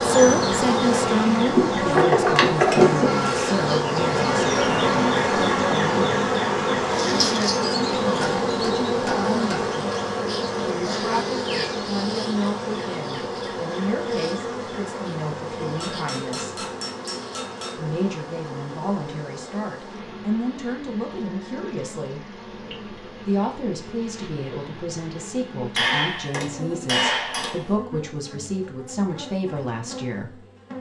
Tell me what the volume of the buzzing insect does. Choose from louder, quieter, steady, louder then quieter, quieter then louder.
quieter.